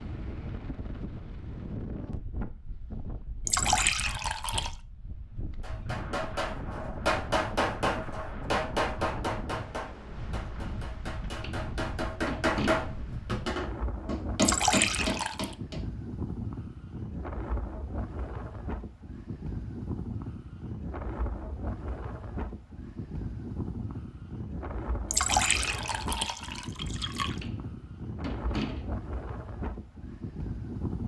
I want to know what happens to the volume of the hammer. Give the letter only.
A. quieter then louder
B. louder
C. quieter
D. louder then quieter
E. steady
A.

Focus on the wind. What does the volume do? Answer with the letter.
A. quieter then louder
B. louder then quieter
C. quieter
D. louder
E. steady
E.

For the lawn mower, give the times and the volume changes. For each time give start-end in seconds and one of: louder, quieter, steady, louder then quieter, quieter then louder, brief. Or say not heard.
not heard.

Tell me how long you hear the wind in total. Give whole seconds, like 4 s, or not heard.
31 s.